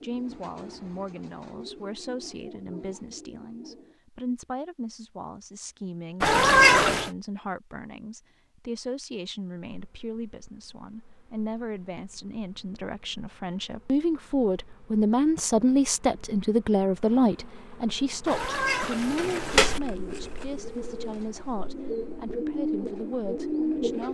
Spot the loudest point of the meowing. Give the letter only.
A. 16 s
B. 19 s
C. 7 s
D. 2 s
C.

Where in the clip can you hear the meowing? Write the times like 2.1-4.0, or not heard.
6.2-7.1, 18.2-19.8.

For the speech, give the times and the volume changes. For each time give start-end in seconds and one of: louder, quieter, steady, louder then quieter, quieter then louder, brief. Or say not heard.
0.0-24.0 louder then quieter.